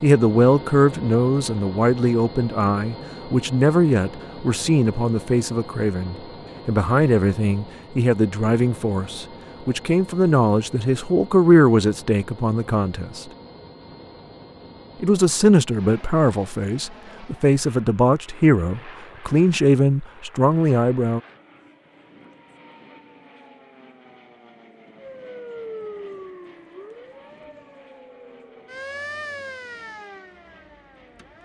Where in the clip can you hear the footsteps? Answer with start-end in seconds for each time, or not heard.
not heard.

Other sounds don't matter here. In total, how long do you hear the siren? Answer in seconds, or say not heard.
6 s.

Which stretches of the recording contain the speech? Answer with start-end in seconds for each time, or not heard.
0.0-13.2, 15.0-21.2.